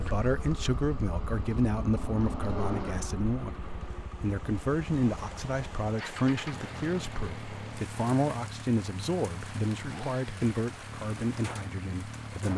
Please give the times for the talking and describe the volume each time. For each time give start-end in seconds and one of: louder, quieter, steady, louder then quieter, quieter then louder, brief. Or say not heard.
0.0-12.5 steady.